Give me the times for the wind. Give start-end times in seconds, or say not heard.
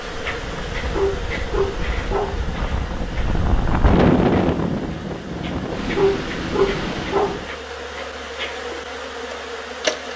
0.0-7.5.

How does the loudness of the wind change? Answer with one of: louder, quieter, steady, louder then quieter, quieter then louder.
louder then quieter.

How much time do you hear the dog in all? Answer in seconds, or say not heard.
3 s.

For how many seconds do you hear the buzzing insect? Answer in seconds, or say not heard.
10 s.